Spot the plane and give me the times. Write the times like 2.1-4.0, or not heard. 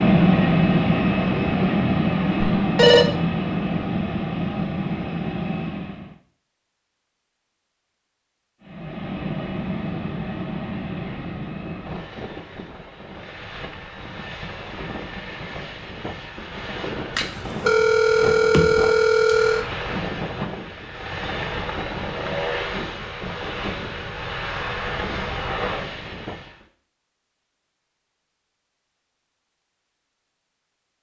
0.0-6.2, 8.6-26.6.